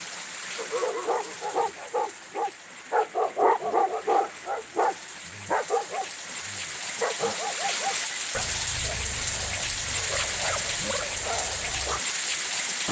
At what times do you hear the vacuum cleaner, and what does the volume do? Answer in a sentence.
The vacuum cleaner can't be heard in this clip.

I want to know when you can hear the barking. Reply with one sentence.
The barking can be heard from 0.6 to 12.0 s.